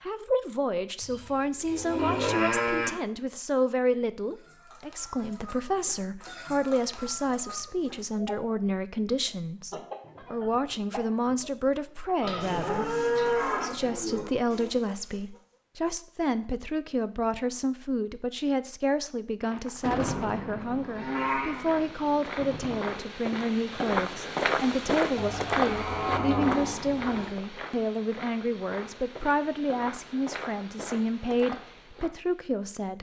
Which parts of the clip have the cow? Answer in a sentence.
The cow can be heard from 1.0 to 2.9 s, from 12.2 to 14.2 s, from 20.9 to 21.9 s and from 25.1 to 27.3 s.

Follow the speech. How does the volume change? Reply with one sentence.
The volume of the speech stays about the same.